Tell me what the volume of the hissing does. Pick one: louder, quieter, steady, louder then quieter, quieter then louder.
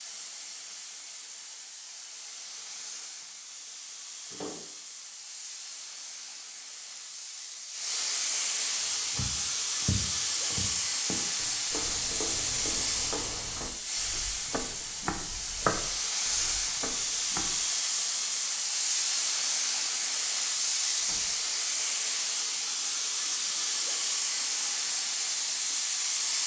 louder.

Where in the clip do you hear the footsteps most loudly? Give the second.
16 s.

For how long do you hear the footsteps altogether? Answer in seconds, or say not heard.
9 s.